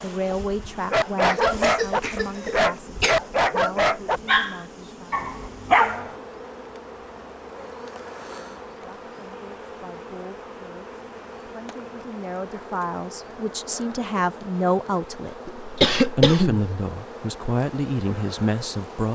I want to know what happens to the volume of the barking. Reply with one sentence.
The loudness of the barking stays about the same.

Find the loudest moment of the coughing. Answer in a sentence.
The loudest moment of the coughing is at 16 seconds.